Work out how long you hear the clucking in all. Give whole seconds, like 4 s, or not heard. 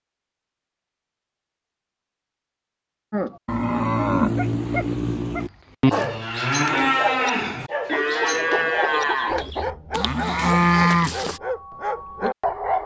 2 s.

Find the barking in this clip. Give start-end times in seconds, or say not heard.
4.3-12.8.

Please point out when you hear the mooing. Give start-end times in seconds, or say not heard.
3.1-11.4.